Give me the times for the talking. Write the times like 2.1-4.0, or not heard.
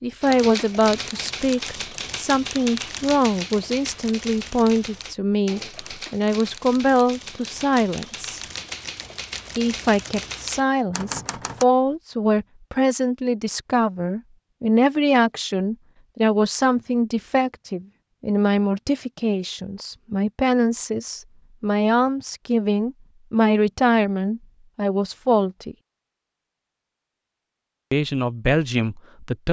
0.0-8.4, 9.6-25.8, 27.9-29.4.